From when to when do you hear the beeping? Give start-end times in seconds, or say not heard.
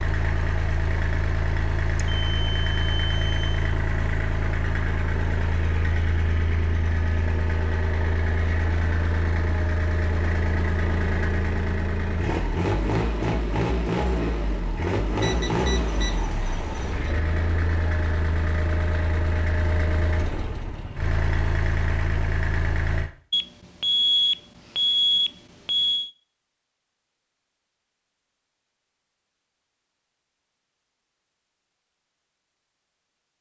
2.0-3.7, 15.2-17.1, 23.3-26.1.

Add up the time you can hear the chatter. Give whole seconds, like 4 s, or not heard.
not heard.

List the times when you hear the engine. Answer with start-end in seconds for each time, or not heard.
0.0-23.1.